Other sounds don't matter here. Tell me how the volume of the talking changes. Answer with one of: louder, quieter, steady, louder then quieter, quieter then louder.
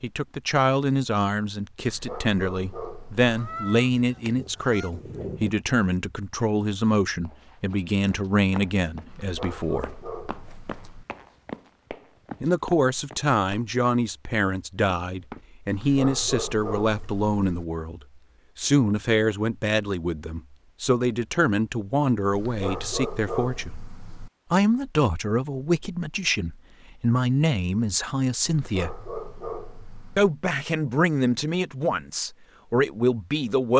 steady.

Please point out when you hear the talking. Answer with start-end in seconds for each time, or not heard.
0.0-9.9, 12.4-23.8, 24.5-29.0, 30.1-33.7.